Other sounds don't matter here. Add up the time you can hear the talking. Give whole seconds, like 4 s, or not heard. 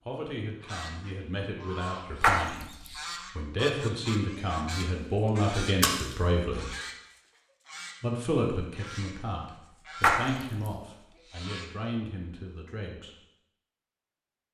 12 s.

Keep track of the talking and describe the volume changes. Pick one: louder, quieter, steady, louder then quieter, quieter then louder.
louder then quieter.